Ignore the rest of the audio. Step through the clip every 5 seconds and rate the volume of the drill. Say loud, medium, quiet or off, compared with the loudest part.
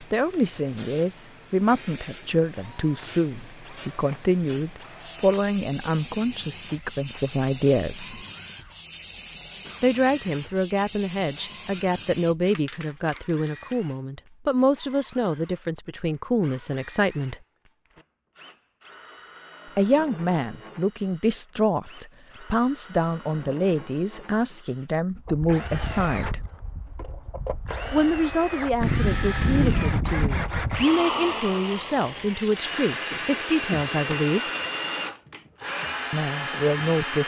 quiet, quiet, quiet, quiet, quiet, loud, loud, loud.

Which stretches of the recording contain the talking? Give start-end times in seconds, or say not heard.
0.0-8.2, 9.8-17.4, 19.8-26.4, 27.9-34.4, 36.1-37.2.